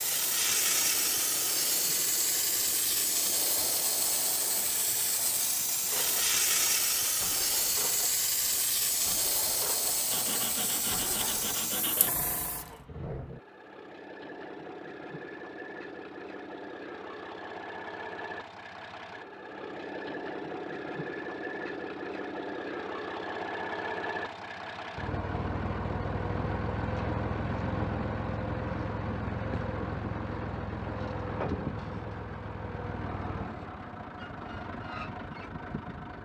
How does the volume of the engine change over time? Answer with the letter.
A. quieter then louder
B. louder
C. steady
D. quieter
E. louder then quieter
B.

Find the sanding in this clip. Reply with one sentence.
You can hear the sanding from 10.1 to 12.1 s.